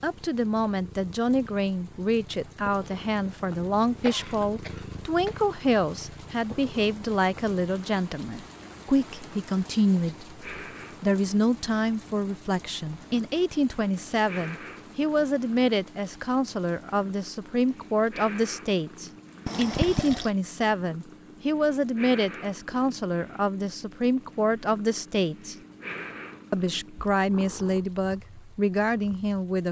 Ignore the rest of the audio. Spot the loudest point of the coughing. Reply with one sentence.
The volume of the coughing peaks at 20 seconds.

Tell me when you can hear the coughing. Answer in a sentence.
You can hear the coughing from 3.9 to 5.5 s and from 19.4 to 20.3 s.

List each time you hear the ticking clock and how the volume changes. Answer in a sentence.
You can't hear the ticking clock here.